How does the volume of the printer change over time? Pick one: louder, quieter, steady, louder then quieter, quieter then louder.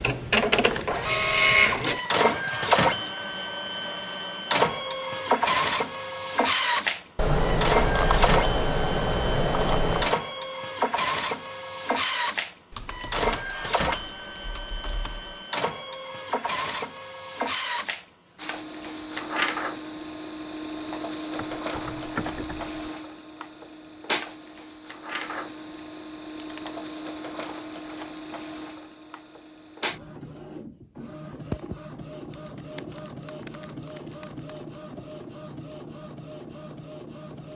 quieter.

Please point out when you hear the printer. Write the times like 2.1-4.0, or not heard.
0.0-37.5.